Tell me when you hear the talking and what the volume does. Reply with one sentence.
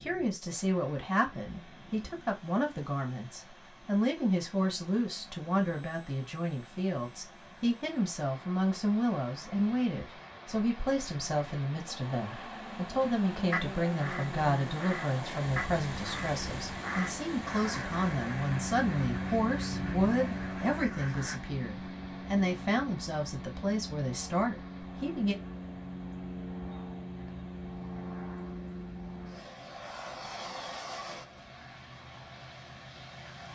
You can hear the talking from 0.0 to 25.4 s, at a steady volume.